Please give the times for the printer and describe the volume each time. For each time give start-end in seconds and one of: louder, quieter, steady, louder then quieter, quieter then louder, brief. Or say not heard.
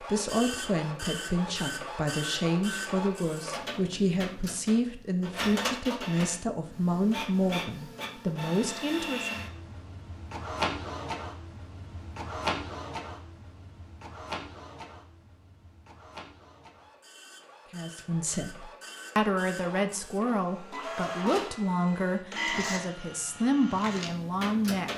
0.0-24.9 quieter then louder.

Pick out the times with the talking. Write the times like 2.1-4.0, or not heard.
0.0-9.3, 17.7-24.9.